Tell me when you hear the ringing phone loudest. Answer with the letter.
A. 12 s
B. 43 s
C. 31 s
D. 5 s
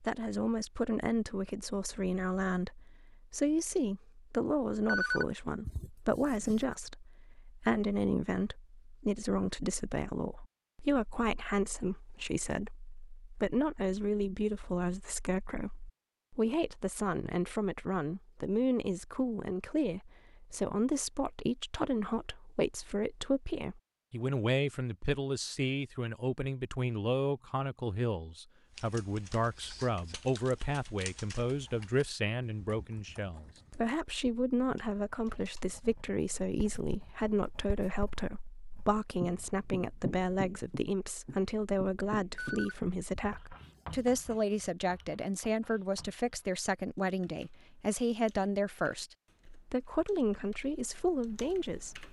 D.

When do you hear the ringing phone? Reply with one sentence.
You can hear the ringing phone from 4.8 to 6.7 s and from 42.4 to 44.1 s.